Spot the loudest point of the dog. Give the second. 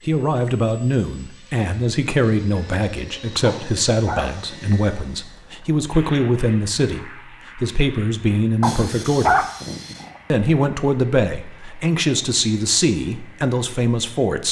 9 s.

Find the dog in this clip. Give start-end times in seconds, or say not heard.
3.4-4.8, 8.6-10.1.